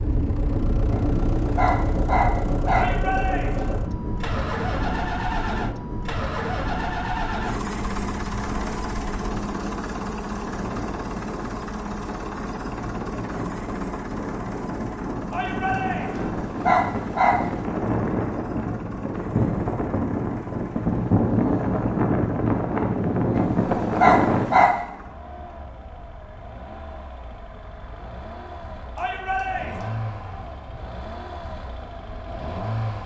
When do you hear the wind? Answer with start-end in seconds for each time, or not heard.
0.0-24.8.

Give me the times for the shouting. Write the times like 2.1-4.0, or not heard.
2.8-3.8, 15.3-16.3, 28.9-29.9.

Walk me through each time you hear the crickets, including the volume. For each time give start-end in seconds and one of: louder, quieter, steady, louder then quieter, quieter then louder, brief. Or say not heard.
not heard.